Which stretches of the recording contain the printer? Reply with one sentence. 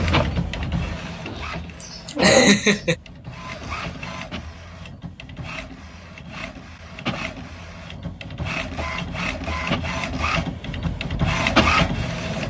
The printer can be heard from 0.0 to 12.4 s.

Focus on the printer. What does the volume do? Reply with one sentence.
The loudness of the printer goes down, then up.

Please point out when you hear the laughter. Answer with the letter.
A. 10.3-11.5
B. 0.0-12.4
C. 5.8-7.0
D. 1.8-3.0
D.